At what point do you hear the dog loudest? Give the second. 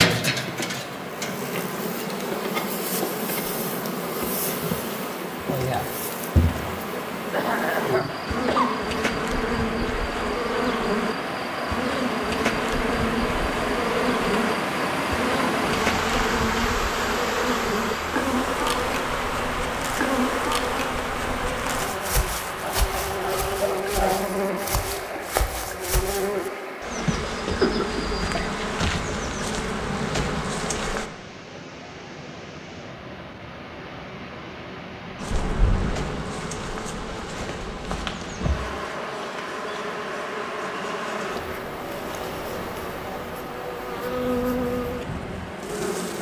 24 s.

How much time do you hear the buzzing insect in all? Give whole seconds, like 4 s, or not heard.
42 s.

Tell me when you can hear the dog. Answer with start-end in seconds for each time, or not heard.
22.4-24.2.